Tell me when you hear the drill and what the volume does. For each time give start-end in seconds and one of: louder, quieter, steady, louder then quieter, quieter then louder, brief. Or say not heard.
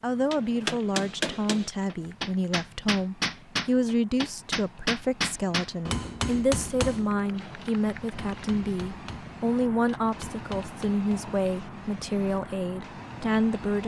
not heard.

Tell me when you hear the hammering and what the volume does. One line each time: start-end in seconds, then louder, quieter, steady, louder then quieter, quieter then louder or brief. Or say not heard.
0.3-11.1 quieter.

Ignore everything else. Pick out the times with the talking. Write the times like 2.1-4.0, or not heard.
0.0-13.8.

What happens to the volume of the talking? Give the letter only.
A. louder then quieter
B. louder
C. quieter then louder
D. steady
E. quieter
D.